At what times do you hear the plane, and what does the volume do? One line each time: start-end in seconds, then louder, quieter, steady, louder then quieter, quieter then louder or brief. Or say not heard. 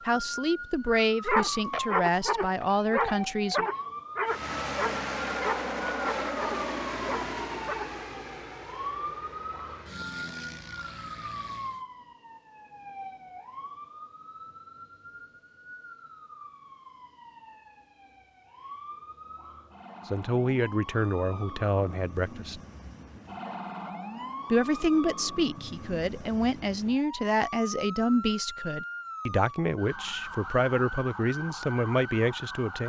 4.2-11.8 quieter.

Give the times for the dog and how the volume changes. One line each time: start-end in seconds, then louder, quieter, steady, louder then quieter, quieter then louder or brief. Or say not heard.
1.2-8.1 quieter.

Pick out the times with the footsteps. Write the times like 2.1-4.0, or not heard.
not heard.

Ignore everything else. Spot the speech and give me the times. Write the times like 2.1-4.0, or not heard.
0.1-3.6, 20.1-22.6, 24.5-32.8.